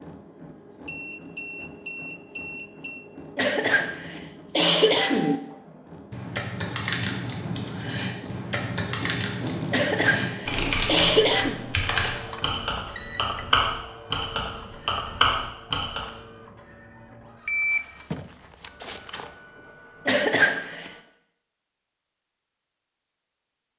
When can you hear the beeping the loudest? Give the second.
18 s.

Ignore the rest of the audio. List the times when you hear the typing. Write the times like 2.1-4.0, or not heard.
6.1-16.1.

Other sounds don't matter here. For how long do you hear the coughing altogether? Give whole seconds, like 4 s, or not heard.
5 s.